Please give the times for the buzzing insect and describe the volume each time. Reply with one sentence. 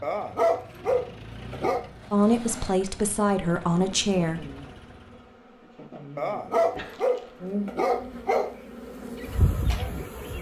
The buzzing insect can be heard from 3.3 to 10.3 s, getting louder.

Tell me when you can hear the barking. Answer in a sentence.
You can hear the barking from 0.0 to 1.9 s and from 6.2 to 8.6 s.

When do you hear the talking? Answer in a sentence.
You can hear the talking from 2.1 to 4.5 s.